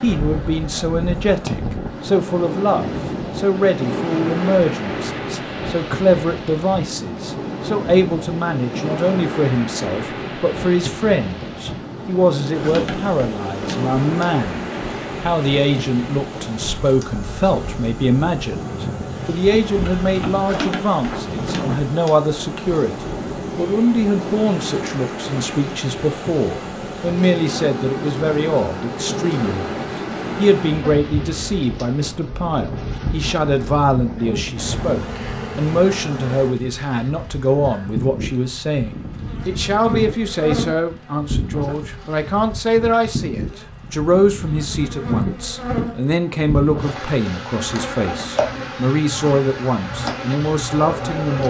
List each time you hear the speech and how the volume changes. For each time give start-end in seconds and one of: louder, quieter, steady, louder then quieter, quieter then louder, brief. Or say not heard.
0.0-51.4 steady.